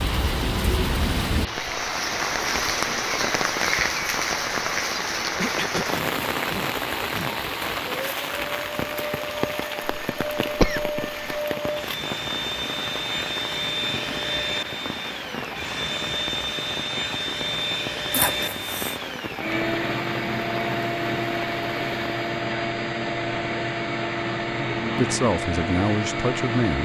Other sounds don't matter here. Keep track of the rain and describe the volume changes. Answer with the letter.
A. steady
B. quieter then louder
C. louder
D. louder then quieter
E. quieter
E.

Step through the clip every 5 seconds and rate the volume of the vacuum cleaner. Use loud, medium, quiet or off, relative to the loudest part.
medium, medium, loud, loud, loud, loud.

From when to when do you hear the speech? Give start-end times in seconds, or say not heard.
24.9-26.7.